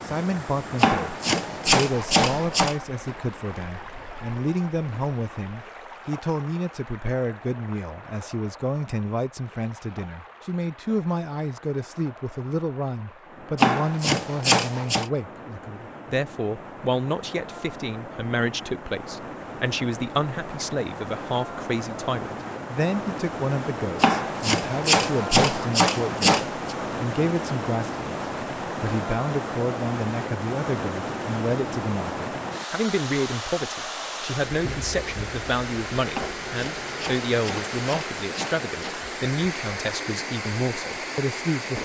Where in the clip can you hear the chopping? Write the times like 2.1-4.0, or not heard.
0.8-2.8, 13.6-15.1, 24.0-26.8, 36.1-39.0.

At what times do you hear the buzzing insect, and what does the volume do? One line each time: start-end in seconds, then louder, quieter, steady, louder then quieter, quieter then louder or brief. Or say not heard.
not heard.